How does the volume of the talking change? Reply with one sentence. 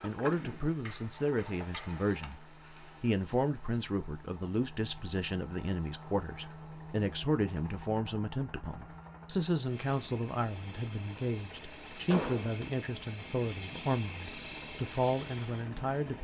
The volume of the talking stays about the same.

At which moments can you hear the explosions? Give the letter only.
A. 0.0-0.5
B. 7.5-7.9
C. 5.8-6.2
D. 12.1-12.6
D.